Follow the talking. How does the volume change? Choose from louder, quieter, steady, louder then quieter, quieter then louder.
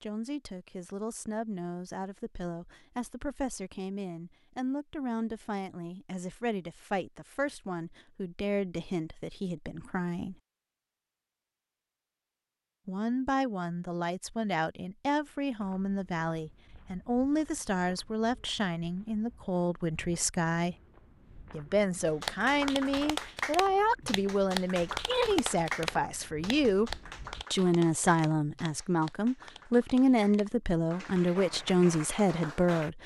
louder.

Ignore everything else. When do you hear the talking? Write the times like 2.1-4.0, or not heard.
0.0-10.3, 12.8-20.8, 21.5-26.9, 27.5-33.0.